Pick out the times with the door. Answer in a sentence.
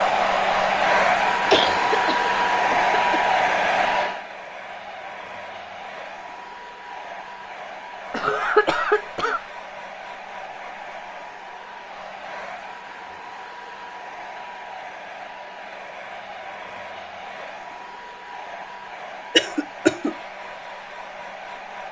You can't hear the door here.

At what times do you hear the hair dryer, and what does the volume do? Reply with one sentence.
The hair dryer can be heard from 0.0 to 21.8 s, getting quieter.